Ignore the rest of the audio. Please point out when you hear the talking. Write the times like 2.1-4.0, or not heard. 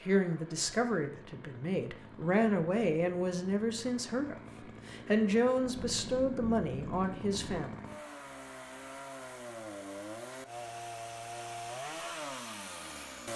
0.0-7.8.